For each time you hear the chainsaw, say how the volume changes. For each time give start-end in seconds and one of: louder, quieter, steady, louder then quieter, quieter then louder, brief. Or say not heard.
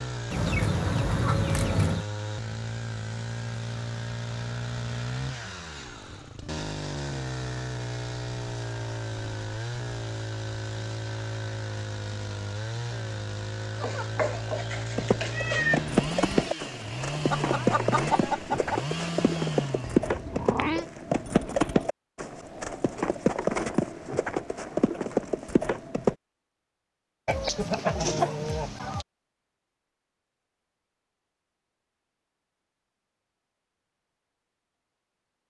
0.0-20.1 steady.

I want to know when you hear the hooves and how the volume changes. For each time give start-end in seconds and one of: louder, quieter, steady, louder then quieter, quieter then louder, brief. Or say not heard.
14.9-26.1 steady.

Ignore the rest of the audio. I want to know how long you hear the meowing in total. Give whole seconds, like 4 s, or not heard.
3 s.